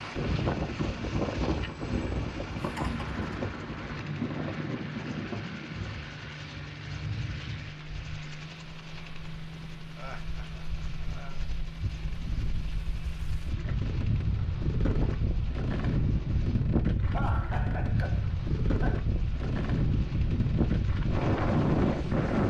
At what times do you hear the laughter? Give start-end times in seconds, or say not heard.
2.6-3.1, 9.9-11.4, 17.1-19.0.